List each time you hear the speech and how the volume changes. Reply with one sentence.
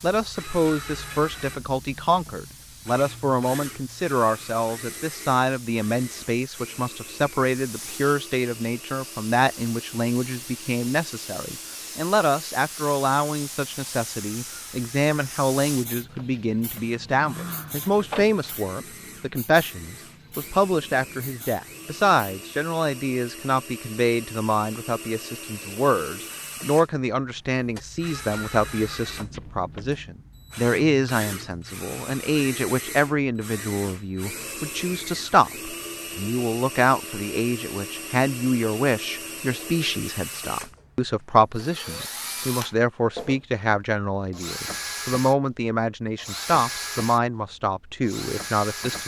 You can hear the speech from 0.0 to 49.0 s, at a steady volume.